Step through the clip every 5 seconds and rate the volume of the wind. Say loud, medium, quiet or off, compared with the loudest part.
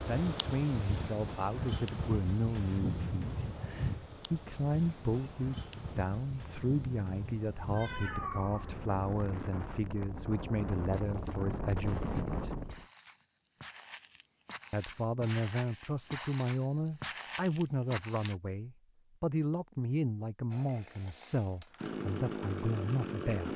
loud, medium, loud, off, off.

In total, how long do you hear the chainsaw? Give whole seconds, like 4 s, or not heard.
3 s.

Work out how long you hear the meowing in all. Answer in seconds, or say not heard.
2 s.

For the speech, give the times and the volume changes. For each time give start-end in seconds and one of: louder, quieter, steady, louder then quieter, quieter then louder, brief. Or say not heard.
0.0-12.6 steady
14.7-23.5 steady.